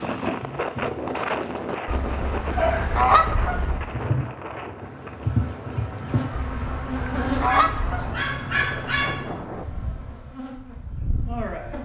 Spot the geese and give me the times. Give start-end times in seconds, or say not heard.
1.9-3.9, 6.3-8.2.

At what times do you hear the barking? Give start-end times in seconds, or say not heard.
2.5-4.2, 7.5-9.3.